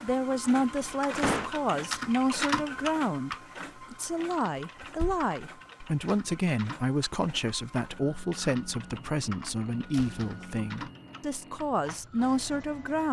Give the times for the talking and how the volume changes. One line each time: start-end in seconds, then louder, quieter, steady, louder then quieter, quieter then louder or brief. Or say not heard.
0.0-13.0 steady.